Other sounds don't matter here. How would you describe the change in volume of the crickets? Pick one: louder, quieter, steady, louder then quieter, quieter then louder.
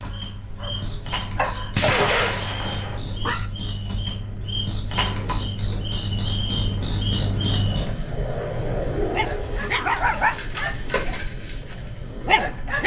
louder.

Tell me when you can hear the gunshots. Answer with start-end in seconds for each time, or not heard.
1.8-3.0.